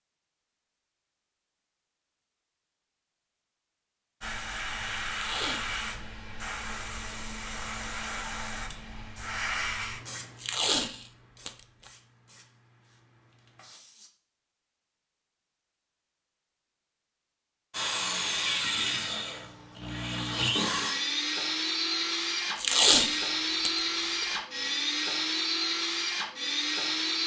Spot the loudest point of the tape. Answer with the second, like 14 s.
23 s.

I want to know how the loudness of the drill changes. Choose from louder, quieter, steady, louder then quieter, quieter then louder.
steady.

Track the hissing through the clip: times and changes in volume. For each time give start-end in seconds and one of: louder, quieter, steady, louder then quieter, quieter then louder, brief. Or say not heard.
4.2-14.1 quieter.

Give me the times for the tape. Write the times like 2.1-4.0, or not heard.
5.1-5.7, 10.3-11.5, 22.6-24.4.